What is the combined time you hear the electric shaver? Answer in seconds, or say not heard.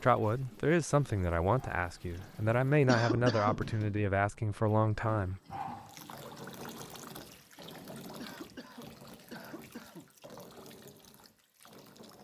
not heard.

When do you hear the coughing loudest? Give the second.
3 s.